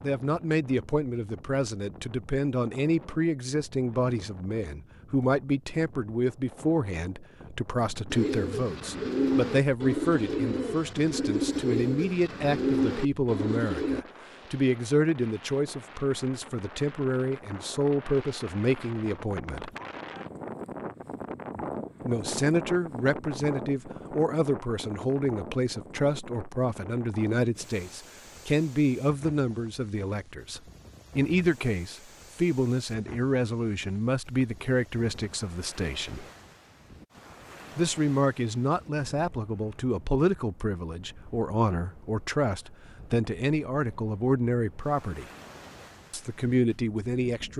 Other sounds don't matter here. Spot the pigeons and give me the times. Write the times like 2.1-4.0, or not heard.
8.1-14.1.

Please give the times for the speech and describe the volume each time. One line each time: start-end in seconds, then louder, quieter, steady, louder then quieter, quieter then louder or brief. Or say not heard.
0.0-19.7 steady
22.1-36.2 steady
37.8-45.2 steady
46.1-47.5 brief.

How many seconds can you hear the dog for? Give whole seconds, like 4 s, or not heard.
not heard.